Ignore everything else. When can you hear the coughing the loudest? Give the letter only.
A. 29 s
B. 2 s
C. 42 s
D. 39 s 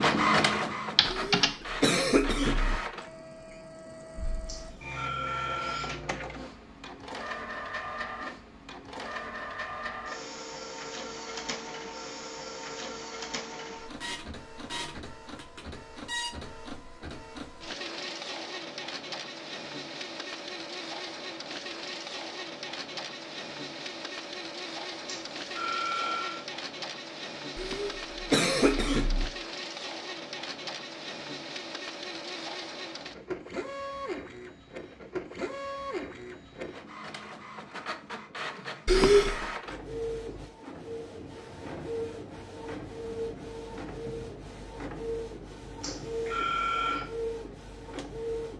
D.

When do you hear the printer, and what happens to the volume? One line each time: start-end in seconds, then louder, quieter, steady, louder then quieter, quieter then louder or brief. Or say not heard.
0.0-48.5 steady.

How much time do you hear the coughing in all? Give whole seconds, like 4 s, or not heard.
4 s.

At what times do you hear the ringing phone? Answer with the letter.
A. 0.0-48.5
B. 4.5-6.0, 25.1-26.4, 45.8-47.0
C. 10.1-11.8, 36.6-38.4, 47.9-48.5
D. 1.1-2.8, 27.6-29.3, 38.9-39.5
B.